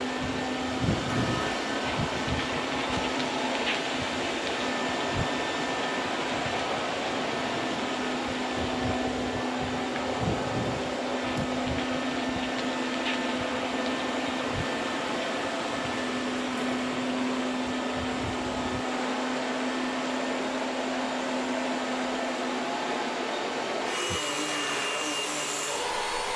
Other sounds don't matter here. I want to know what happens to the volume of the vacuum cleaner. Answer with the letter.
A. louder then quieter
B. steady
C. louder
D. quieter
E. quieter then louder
B.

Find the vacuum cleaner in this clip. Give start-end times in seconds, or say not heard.
0.0-26.3.